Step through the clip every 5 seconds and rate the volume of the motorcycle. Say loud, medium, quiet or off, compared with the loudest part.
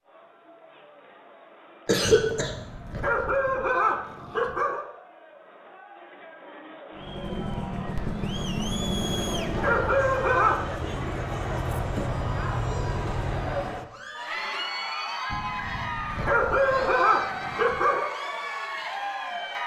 off, loud, loud, off.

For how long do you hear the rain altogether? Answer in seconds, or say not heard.
not heard.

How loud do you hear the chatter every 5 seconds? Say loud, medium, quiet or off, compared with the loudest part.
quiet, medium, loud, loud.